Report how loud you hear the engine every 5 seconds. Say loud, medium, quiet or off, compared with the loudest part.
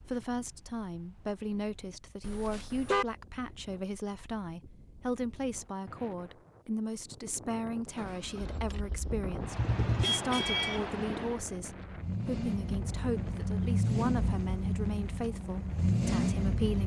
off, quiet, loud, loud.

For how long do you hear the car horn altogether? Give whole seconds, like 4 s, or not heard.
2 s.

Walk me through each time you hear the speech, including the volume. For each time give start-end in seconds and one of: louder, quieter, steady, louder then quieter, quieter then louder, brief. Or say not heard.
0.0-16.8 steady.